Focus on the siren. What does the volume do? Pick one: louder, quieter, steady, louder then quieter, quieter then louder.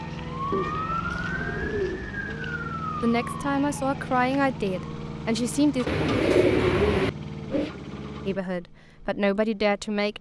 quieter.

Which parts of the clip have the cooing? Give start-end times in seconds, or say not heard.
0.5-2.1, 5.8-7.7.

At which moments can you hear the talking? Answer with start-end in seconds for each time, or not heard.
3.0-5.8, 8.2-10.1.